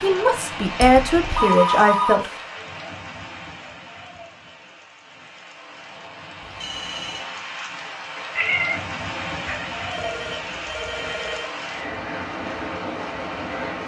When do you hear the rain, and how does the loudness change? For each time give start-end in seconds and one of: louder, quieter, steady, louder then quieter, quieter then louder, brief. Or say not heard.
0.0-13.8 quieter then louder.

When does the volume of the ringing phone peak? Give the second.
2 s.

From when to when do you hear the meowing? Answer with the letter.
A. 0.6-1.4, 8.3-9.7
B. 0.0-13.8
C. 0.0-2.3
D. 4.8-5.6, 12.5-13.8
A.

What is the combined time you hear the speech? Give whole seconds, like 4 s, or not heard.
2 s.